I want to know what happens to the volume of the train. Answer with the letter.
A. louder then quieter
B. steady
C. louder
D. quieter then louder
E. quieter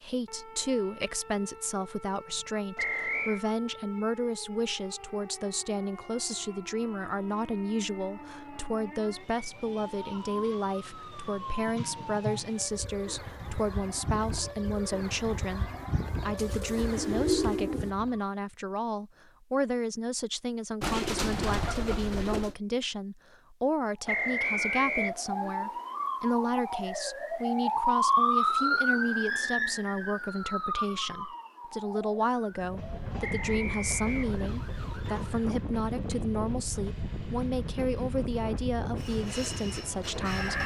B.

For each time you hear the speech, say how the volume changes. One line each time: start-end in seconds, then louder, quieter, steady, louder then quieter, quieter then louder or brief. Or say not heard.
0.0-40.6 steady.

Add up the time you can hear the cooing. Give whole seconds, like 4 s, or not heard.
3 s.